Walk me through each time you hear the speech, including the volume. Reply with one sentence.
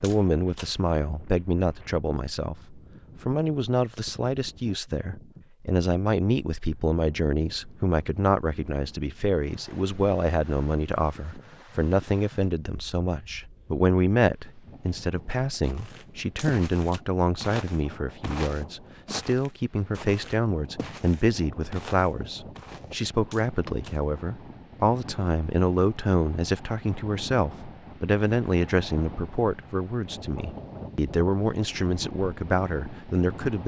The speech can be heard from 0.0 to 33.6 s, at a steady volume.